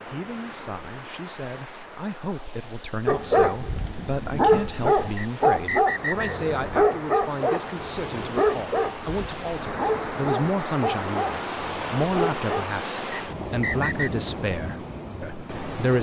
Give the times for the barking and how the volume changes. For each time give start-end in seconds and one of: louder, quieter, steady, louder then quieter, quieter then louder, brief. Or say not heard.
3.0-12.7 quieter.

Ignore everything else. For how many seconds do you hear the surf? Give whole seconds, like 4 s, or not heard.
16 s.